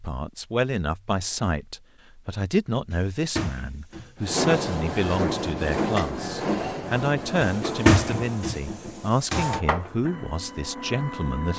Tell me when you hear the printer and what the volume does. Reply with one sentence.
You can hear the printer from 4.2 to 11.5 s, getting quieter.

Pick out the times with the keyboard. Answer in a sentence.
The keyboard can't be heard in this clip.